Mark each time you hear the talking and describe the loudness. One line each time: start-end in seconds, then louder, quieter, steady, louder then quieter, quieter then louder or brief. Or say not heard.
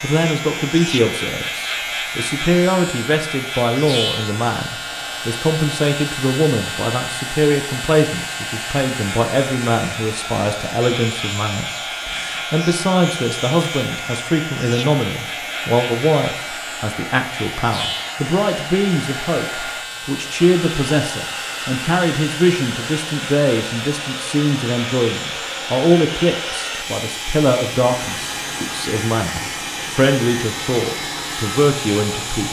0.0-32.4 steady.